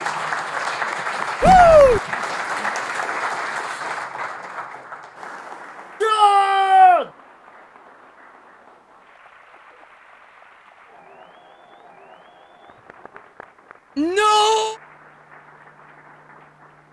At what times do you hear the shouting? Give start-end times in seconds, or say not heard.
1.4-2.0, 6.0-7.0, 13.9-14.8.